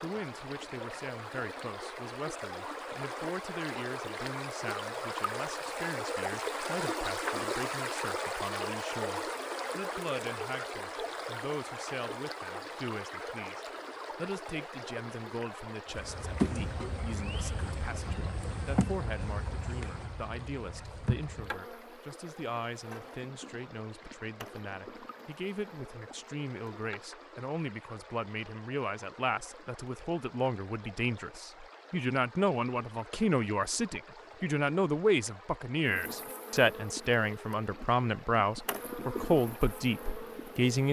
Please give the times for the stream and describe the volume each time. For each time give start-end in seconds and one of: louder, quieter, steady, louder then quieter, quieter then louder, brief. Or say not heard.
0.0-40.8 quieter.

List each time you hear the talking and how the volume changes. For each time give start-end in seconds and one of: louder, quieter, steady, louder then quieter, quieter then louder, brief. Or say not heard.
0.0-40.8 louder.